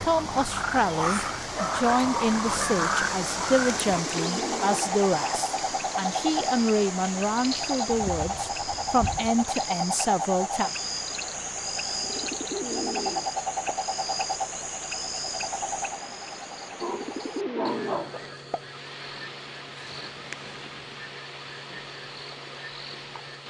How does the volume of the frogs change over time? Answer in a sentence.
The loudness of the frogs goes down.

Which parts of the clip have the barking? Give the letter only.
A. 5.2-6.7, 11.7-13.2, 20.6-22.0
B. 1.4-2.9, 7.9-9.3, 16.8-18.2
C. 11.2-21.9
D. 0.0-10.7
B.